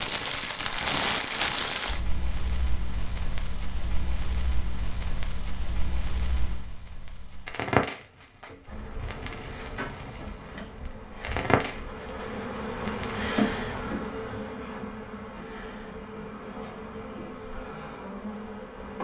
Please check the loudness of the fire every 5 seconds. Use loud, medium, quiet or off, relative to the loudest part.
loud, loud, loud, off.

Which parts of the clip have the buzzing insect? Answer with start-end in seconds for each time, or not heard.
8.7-18.9.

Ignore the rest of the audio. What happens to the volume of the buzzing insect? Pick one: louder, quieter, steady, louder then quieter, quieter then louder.
louder then quieter.